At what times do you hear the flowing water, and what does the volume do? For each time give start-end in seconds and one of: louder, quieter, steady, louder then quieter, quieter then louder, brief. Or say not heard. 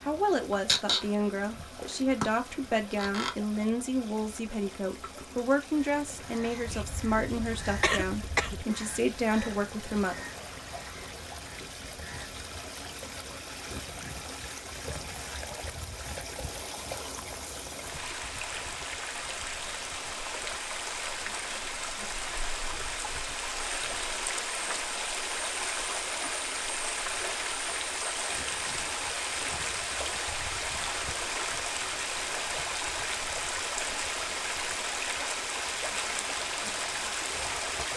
0.0-37.9 louder.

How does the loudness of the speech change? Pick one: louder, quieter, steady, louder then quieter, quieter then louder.
steady.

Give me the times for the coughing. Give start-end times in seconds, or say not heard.
6.7-8.7.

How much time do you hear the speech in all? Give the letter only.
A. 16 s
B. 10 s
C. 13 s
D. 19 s
B.